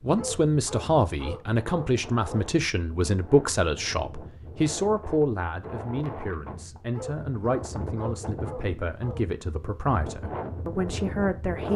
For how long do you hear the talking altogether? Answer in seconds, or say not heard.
12 s.